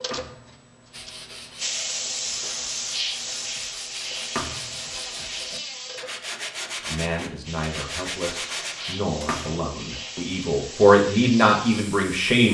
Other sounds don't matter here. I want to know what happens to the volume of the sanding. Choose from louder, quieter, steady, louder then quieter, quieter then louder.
louder.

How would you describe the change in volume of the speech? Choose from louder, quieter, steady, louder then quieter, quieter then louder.
louder.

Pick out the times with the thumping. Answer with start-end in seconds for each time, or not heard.
0.1-0.6, 4.3-4.8, 9.2-9.8.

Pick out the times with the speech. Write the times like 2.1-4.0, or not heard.
6.8-12.4.